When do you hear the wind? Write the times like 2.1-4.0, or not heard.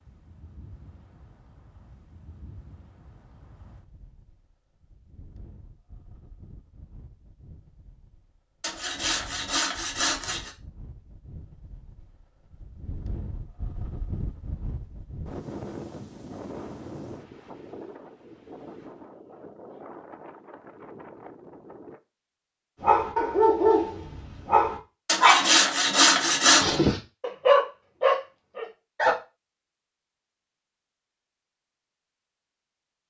0.0-22.0.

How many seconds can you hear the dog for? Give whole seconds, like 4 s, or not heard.
6 s.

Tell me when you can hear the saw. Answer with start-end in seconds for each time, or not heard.
8.6-10.5, 25.1-26.8.